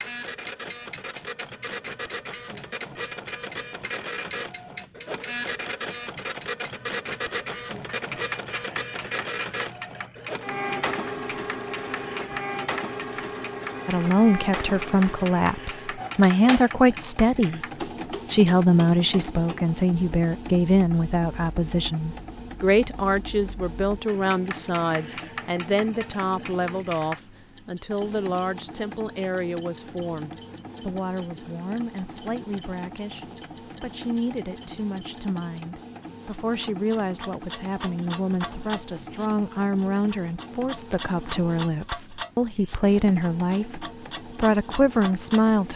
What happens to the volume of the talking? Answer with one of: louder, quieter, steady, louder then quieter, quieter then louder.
quieter then louder.